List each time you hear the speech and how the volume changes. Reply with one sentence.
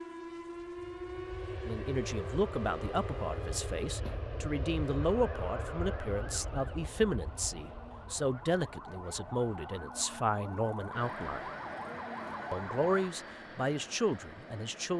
You can hear the speech from 1.6 to 11.4 s, at a steady volume; and briefly from 12.5 to 14.9 s.